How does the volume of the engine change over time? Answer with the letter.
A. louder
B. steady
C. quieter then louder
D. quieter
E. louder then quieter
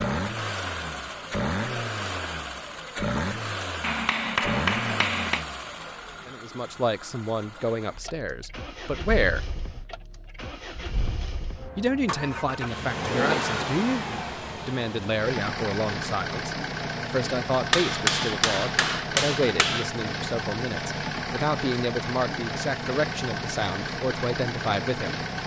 C.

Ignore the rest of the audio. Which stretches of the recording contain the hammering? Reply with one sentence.
You can hear the hammering from 3.8 to 5.5 s and from 17.7 to 19.9 s.